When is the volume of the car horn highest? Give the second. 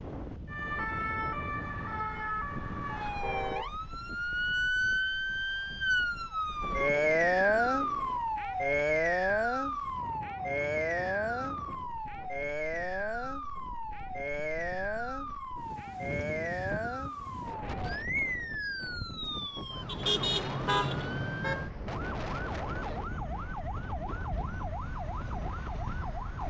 20 s.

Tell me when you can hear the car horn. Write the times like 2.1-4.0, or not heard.
3.2-3.8, 19.9-21.7.